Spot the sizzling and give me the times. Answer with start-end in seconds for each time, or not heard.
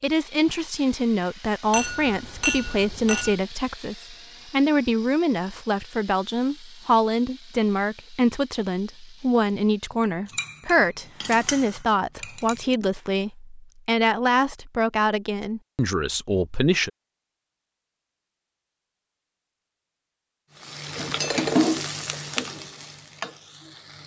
20.6-24.0.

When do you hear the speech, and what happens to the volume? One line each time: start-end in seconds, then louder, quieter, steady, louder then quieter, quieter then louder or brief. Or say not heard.
0.0-16.9 steady.